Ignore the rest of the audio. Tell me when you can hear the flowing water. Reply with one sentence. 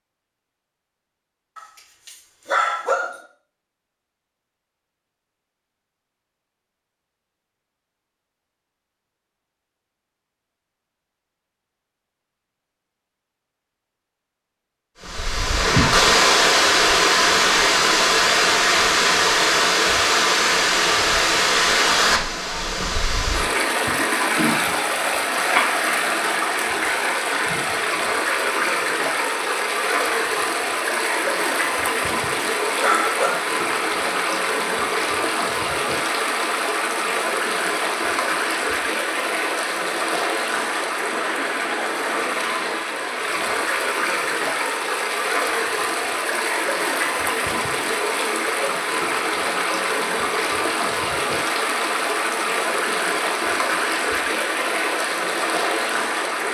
The flowing water can be heard from 15.0 to 56.4 s.